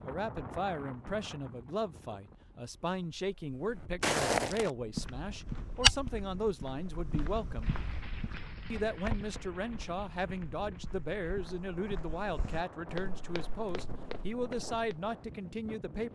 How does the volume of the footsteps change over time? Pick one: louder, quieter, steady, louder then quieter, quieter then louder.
quieter.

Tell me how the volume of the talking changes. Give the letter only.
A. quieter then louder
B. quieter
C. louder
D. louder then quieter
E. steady
E.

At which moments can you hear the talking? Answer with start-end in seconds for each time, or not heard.
0.0-7.8, 8.7-16.1.